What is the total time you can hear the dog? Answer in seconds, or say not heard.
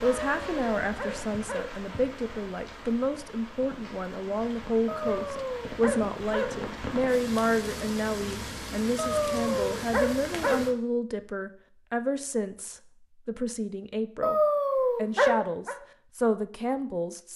7 s.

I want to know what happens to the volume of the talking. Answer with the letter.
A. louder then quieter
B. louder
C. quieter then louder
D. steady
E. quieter
D.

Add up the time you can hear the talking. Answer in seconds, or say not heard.
17 s.